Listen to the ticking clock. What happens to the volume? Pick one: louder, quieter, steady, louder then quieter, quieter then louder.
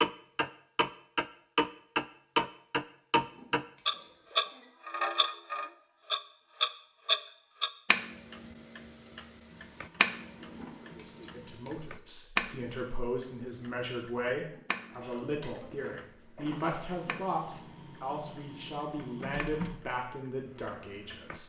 quieter.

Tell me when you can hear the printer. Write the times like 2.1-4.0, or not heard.
9.4-11.7, 16.4-19.8.